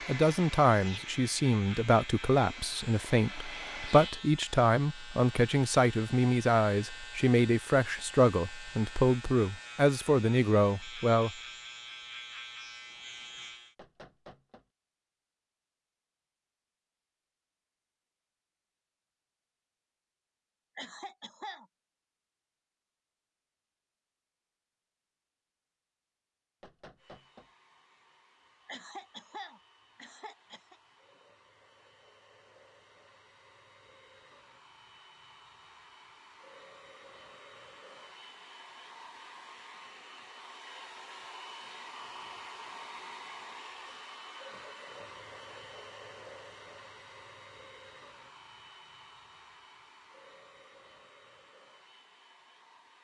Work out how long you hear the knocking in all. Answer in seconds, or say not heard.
2 s.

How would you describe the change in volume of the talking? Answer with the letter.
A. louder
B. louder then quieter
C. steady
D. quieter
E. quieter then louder
C.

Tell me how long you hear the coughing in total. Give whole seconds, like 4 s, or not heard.
3 s.